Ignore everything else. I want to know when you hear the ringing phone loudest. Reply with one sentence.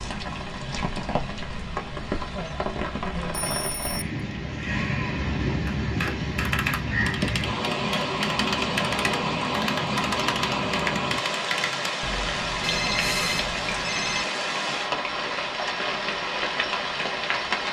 The loudest moment of the ringing phone is at 13 seconds.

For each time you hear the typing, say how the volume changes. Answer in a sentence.
You can hear the typing from 5.7 to 14.3 s, at a steady volume.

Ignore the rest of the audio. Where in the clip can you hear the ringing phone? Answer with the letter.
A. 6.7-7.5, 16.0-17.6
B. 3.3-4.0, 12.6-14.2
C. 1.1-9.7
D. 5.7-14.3
B.